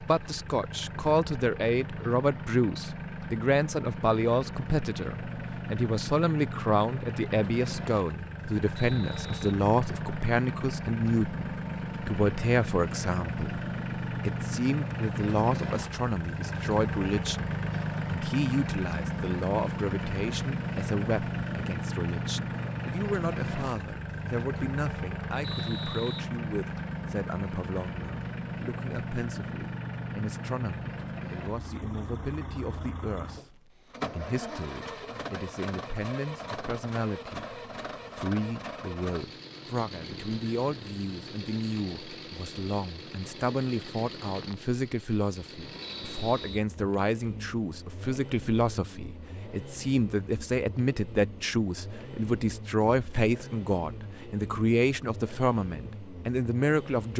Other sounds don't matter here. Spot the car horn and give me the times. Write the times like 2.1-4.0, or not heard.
not heard.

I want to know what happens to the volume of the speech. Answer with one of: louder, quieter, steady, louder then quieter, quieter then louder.
quieter then louder.